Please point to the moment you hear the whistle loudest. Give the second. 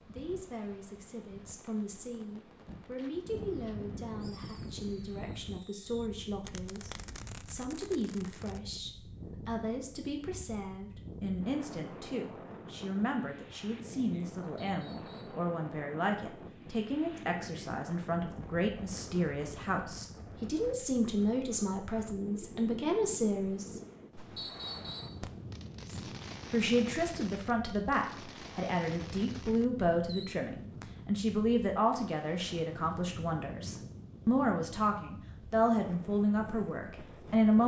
25 s.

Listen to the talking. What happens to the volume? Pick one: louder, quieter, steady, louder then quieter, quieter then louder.
louder.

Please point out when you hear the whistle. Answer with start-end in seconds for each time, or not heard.
14.6-15.4, 24.4-25.2.